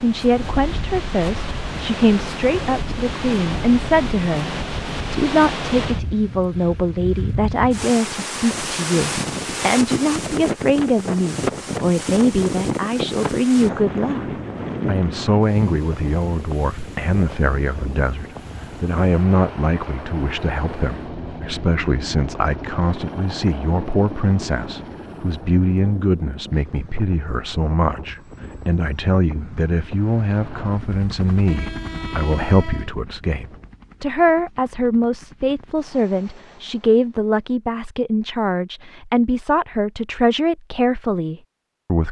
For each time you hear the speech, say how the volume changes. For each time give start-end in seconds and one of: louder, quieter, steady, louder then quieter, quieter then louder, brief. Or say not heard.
0.0-14.2 steady
14.8-42.0 steady.